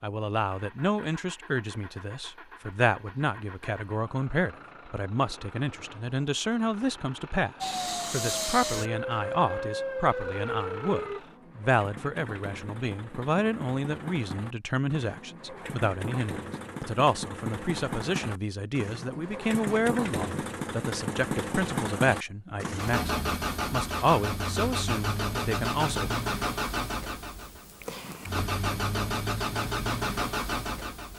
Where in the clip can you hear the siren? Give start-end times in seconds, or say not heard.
7.6-11.2.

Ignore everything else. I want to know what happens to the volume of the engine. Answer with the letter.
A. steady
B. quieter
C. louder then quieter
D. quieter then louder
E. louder
E.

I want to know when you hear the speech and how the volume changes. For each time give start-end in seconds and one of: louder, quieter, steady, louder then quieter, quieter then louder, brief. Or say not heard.
0.0-26.1 steady.